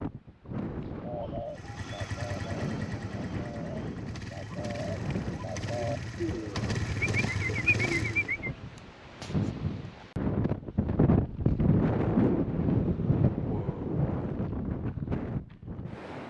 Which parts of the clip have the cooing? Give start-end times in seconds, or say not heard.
1.0-8.5.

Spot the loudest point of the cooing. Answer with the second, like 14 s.
8 s.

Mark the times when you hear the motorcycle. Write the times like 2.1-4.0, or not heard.
1.5-8.4.